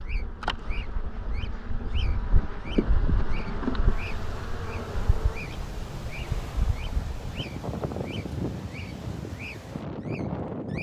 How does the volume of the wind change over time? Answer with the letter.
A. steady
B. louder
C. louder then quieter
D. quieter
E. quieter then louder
B.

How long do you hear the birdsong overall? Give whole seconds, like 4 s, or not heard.
11 s.